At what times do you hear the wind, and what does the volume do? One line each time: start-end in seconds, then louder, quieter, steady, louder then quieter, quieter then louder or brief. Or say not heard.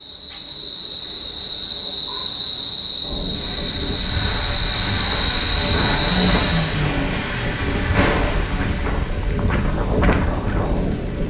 3.0-11.2 louder.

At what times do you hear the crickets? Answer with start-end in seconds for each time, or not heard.
0.0-6.8.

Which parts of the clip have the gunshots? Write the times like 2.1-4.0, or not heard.
7.9-9.0.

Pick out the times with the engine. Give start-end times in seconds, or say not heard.
3.2-11.2.